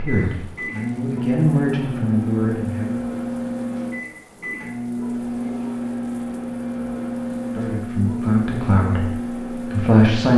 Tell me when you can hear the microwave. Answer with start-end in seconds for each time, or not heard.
0.0-10.3.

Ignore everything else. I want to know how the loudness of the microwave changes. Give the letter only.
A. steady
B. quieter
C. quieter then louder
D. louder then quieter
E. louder
A.